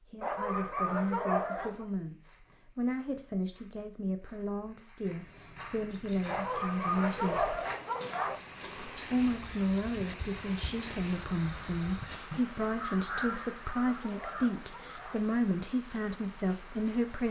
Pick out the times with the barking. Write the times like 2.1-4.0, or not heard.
0.2-1.9, 6.2-8.4, 13.1-15.2.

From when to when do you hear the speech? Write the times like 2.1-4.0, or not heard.
0.0-7.5, 8.9-17.2.